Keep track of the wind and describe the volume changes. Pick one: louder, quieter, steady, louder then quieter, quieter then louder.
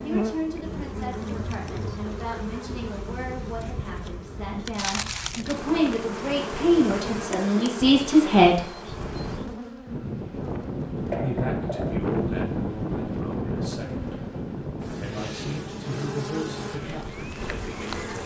louder then quieter.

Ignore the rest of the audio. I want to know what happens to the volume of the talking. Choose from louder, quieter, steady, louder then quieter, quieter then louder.
louder then quieter.